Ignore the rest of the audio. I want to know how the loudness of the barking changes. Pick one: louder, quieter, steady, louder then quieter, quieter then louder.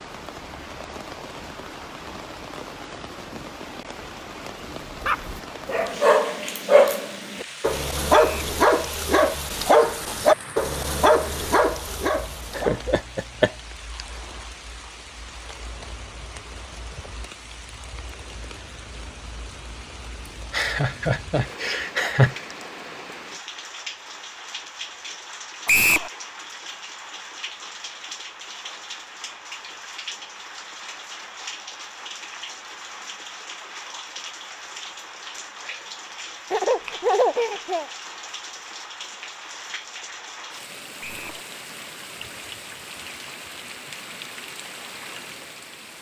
steady.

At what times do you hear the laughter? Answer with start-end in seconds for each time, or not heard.
12.6-13.5, 20.5-22.4, 36.5-37.9.